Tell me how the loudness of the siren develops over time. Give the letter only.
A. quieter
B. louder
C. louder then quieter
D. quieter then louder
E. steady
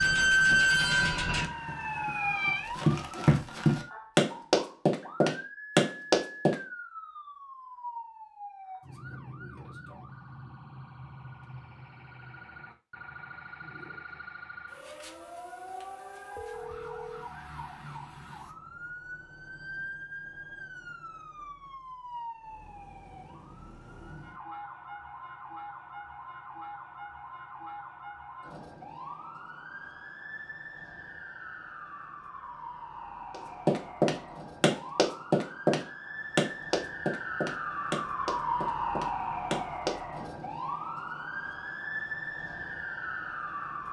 D.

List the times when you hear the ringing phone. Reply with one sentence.
The ringing phone can be heard from 16.4 to 17.3 s.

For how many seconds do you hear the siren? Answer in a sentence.
You can hear the siren for 44 seconds altogether.